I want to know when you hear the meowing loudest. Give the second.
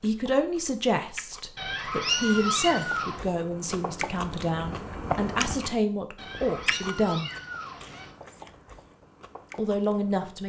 2 s.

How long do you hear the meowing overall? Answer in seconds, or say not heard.
4 s.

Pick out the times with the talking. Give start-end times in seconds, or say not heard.
0.0-7.3, 9.6-10.4.